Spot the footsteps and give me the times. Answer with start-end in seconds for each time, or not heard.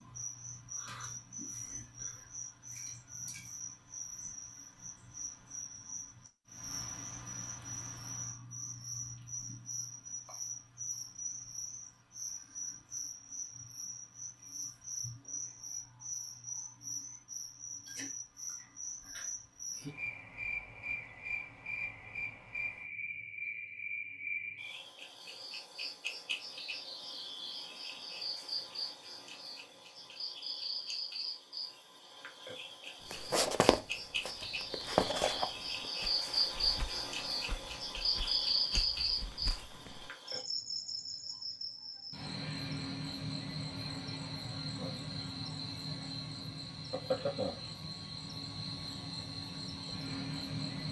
33.1-40.1.